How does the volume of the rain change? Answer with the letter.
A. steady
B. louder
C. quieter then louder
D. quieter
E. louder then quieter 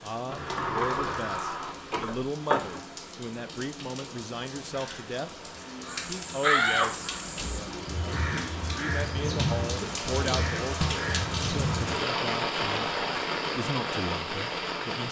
B.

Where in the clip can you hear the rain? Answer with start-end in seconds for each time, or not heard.
0.0-15.0.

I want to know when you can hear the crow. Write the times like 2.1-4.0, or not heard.
5.8-11.9.